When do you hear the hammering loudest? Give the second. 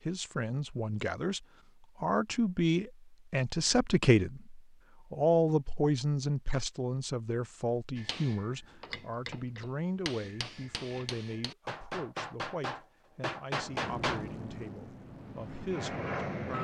14 s.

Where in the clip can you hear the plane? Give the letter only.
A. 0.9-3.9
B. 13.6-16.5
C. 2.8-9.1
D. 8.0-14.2
B.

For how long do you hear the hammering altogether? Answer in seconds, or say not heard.
6 s.